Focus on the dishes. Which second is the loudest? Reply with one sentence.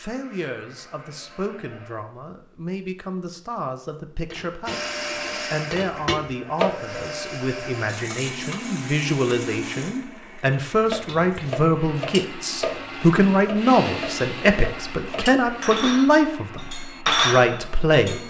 The loudest moment of the dishes is at 17 seconds.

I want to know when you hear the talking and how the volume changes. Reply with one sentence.
The talking can be heard from 0.0 to 18.2 s, getting louder.